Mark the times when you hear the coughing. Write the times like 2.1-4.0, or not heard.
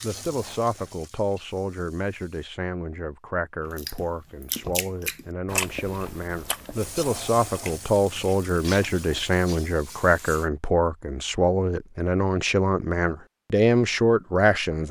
not heard.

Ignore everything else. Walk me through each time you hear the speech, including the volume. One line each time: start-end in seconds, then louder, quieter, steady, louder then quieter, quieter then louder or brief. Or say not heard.
0.0-14.8 louder.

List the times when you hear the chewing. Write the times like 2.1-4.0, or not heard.
3.8-9.3.